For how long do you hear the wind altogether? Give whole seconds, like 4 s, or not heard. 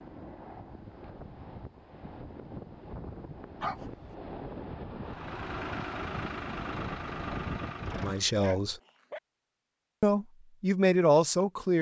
8 s.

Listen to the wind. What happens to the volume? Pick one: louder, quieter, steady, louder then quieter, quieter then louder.
louder.